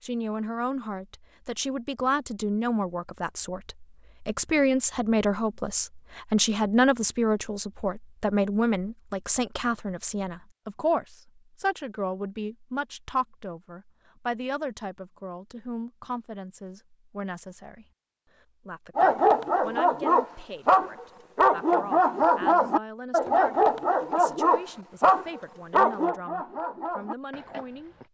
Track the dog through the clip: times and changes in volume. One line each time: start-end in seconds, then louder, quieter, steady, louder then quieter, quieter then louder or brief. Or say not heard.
18.9-28.0 quieter.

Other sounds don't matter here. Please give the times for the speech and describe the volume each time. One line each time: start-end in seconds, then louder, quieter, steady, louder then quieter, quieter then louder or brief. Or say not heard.
0.0-27.9 quieter.